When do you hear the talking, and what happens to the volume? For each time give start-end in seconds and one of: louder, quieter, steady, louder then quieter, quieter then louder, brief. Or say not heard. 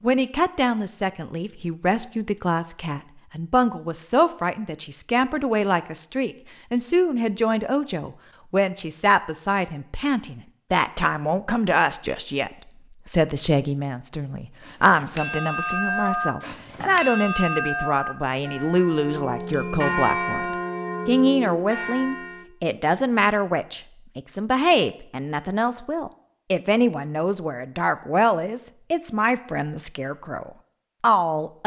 0.0-31.6 steady.